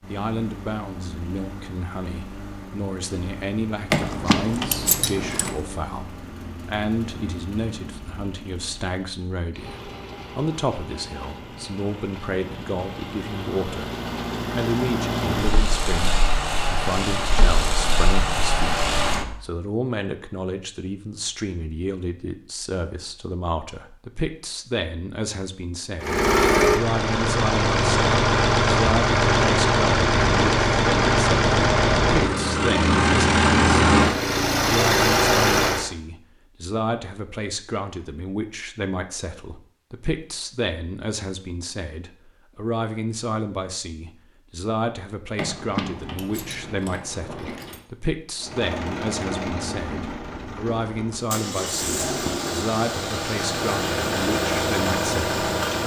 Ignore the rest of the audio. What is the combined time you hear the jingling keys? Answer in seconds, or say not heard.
4 s.